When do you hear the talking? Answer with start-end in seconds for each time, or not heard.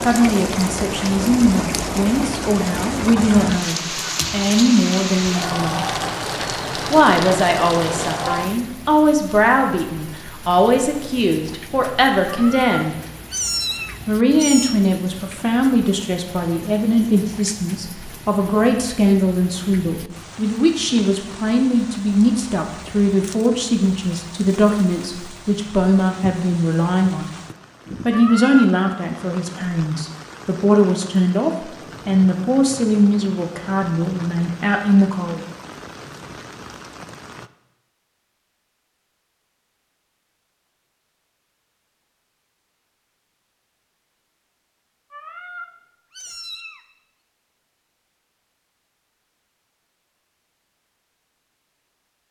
0.0-5.8, 6.9-12.9, 14.1-27.3, 28.1-35.4.